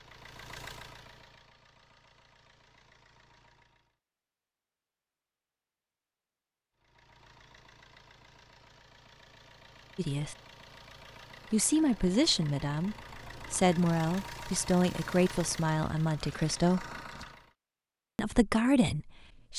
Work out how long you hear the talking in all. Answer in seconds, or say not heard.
7 s.